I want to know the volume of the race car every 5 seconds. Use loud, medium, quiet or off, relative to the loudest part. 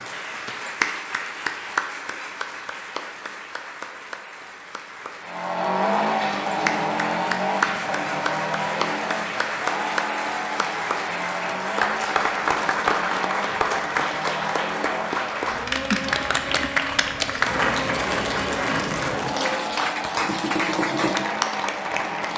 off, loud, medium, medium, medium.